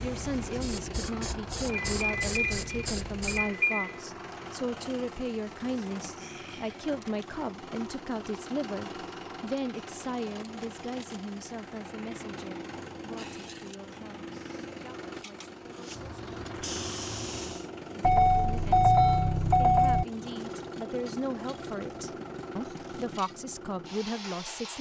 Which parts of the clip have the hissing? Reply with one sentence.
The hissing can be heard from 0.0 to 3.5 s and from 15.8 to 17.7 s.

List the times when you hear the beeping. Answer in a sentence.
The beeping can be heard from 1.6 to 4.0 s and from 18.0 to 20.1 s.